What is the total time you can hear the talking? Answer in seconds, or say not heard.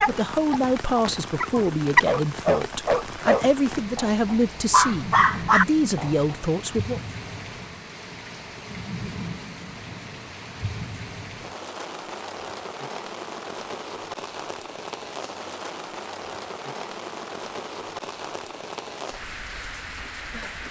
7 s.